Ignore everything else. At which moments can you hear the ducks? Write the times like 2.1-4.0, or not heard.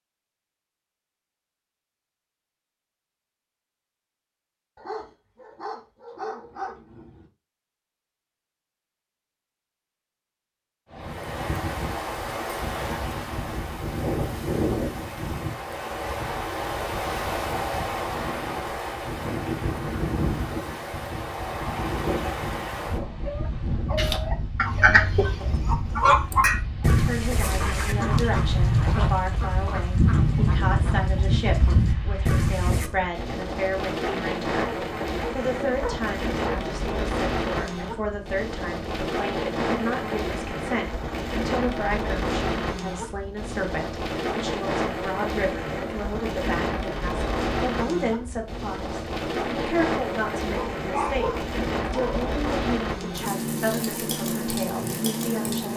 23.9-32.9.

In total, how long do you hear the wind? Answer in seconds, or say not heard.
45 s.